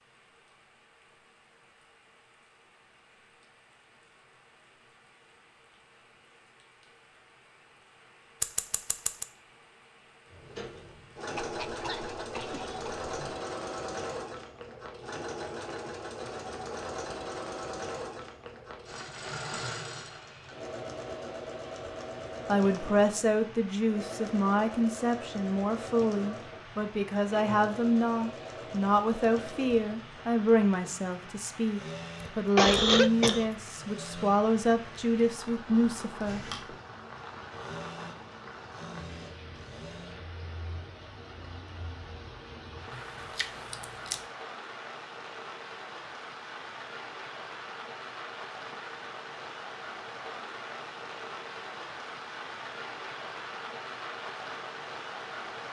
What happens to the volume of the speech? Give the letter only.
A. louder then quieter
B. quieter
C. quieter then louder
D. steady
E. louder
D.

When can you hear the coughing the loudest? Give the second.
33 s.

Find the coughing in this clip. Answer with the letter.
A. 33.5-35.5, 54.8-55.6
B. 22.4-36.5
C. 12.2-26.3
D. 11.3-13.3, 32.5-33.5
D.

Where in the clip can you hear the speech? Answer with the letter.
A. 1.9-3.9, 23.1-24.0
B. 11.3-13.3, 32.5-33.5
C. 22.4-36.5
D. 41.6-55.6
C.